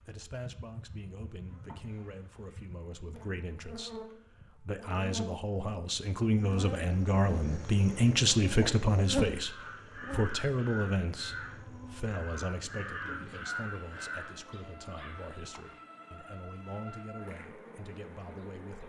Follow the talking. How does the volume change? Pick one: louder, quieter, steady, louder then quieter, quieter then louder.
louder then quieter.